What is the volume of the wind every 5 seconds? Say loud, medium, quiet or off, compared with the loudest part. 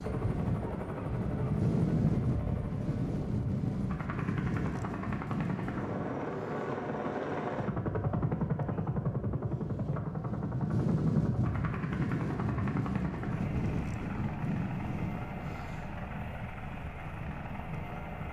loud, medium, loud, medium.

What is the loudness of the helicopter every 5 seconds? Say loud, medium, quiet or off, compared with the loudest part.
medium, loud, medium, medium.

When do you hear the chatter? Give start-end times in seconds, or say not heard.
not heard.